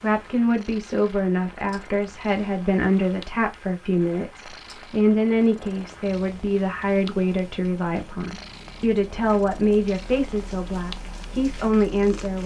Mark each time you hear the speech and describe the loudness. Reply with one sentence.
You can hear the speech from 0.0 to 12.4 s, at a steady volume.